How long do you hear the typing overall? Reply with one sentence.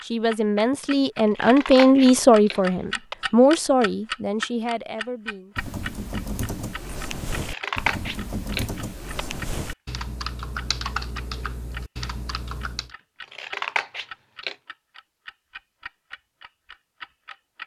The typing can be heard for 7 seconds in total.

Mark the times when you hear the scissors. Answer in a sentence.
The scissors can be heard from 1.2 to 3.1 s, from 7.3 to 9.2 s and from 13.2 to 14.6 s.